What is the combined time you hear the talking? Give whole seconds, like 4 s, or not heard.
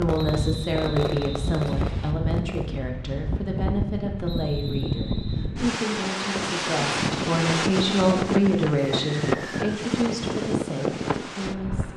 12 s.